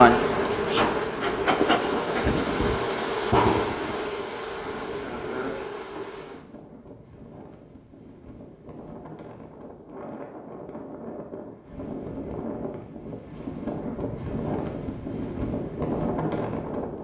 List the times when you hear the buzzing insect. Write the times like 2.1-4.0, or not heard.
0.0-6.5.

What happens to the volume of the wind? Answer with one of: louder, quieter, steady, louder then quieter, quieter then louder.
quieter then louder.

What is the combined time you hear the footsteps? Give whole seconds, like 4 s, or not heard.
not heard.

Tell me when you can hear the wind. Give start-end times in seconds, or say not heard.
0.1-16.9.